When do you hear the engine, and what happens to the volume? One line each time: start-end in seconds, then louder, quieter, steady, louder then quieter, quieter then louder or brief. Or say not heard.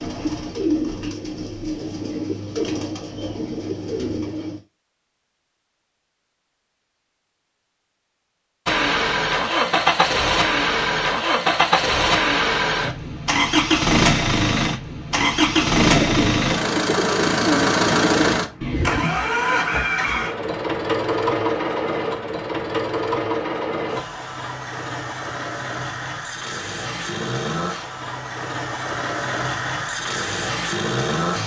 8.7-31.4 quieter.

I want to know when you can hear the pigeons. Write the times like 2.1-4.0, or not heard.
0.0-4.6, 15.1-19.1.